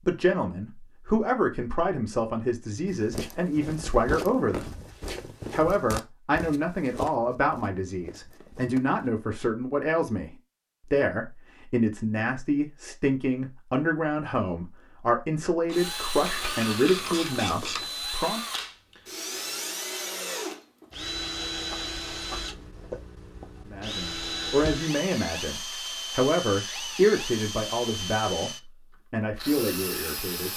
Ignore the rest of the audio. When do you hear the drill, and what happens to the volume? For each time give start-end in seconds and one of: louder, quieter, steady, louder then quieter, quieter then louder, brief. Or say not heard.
15.7-30.5 steady.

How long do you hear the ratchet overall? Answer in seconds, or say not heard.
2 s.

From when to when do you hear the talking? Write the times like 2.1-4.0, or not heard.
0.1-4.7, 5.5-18.4, 23.6-30.5.